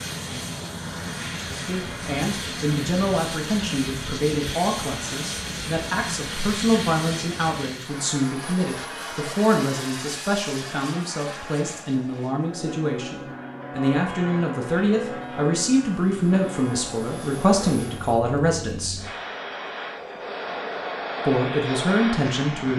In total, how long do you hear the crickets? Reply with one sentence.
The crickets can't be heard in this clip.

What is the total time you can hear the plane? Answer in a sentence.
You can hear the plane for 23 seconds altogether.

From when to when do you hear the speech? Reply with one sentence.
You can hear the speech from 1.4 to 19.0 s and from 21.2 to 22.7 s.